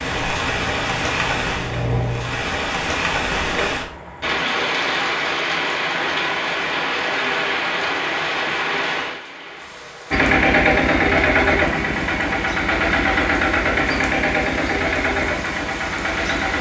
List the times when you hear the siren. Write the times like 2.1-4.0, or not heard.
not heard.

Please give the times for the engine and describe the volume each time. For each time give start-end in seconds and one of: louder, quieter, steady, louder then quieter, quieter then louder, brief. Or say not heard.
0.0-2.5 brief
10.1-16.5 quieter.